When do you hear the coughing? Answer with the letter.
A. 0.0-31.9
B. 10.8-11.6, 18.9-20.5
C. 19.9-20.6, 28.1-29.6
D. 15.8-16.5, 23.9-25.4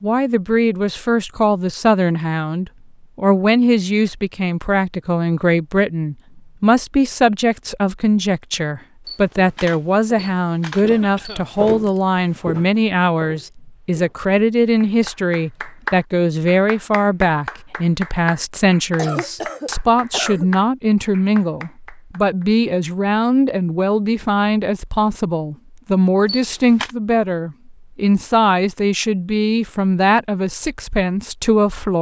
B.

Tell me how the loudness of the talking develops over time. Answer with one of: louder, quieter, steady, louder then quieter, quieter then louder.
steady.